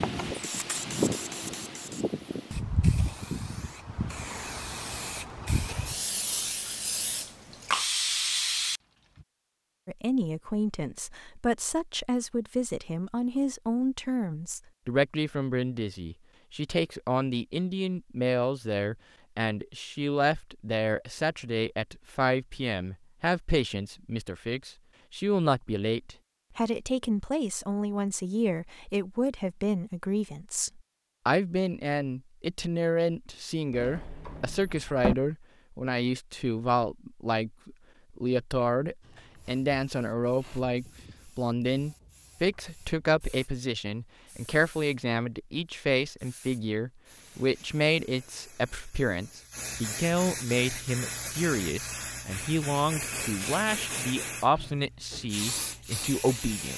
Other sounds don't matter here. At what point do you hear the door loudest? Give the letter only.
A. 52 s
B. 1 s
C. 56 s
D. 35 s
D.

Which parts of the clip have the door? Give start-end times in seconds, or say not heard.
33.7-35.1.